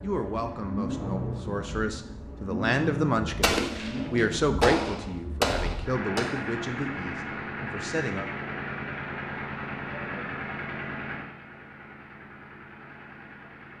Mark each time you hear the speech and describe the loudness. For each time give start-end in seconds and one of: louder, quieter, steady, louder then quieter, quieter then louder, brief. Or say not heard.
0.0-8.2 louder then quieter.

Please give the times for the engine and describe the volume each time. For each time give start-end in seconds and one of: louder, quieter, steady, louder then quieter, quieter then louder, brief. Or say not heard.
0.0-13.7 quieter.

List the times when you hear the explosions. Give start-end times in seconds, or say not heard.
3.4-6.3.